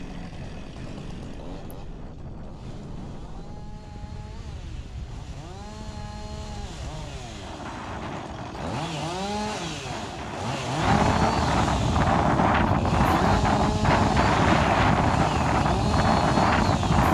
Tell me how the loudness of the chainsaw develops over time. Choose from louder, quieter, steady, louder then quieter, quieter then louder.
louder.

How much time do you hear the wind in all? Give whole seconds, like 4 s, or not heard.
17 s.